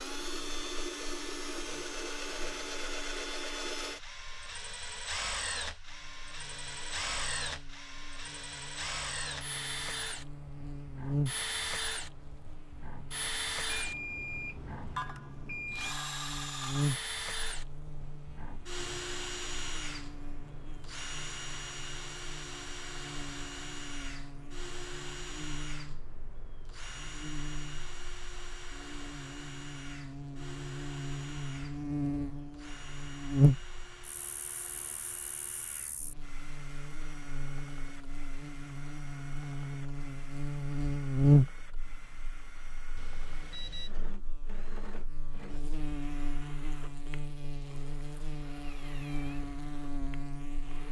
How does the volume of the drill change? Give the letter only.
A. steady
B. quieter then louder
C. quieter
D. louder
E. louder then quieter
C.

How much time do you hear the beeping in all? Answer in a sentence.
The beeping can be heard for 3 seconds in total.